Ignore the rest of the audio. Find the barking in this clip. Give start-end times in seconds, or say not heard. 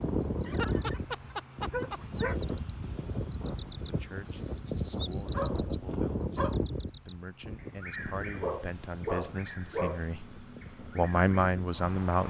0.4-2.4, 5.3-6.6, 8.4-10.1.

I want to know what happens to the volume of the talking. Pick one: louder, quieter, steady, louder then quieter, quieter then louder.
louder.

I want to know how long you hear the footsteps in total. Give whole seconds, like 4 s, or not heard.
not heard.